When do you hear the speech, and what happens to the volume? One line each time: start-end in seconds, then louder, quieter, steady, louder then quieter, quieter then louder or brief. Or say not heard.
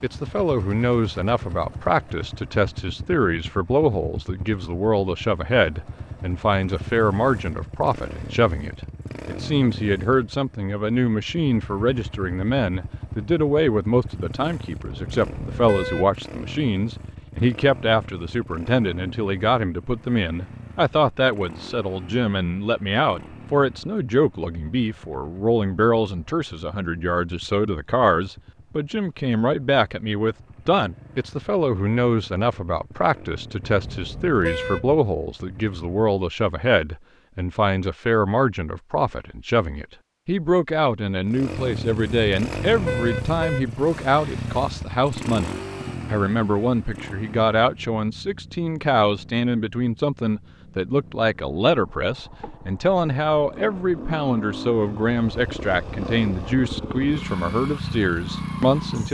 0.0-59.0 steady.